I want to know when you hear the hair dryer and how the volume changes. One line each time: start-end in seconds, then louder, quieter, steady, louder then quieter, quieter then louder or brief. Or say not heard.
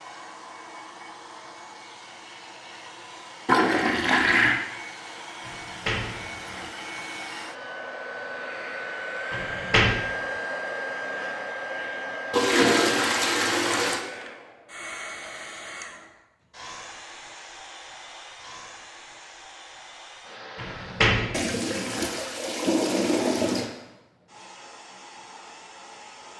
0.0-26.3 louder then quieter.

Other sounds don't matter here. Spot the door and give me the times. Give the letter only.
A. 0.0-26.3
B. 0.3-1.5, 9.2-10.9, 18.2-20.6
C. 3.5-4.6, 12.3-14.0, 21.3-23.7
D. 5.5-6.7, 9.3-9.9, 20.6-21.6
D.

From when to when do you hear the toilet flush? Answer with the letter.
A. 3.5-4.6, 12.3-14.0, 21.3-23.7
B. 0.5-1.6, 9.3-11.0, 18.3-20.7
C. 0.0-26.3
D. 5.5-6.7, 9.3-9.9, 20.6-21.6
A.